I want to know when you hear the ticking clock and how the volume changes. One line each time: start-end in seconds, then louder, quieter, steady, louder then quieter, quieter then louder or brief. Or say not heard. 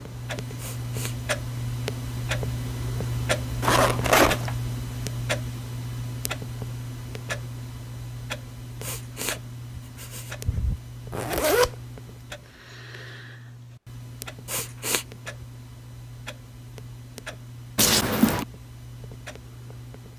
0.0-20.1 quieter.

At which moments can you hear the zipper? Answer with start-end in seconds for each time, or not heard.
3.6-4.5, 11.1-11.7, 17.8-18.4.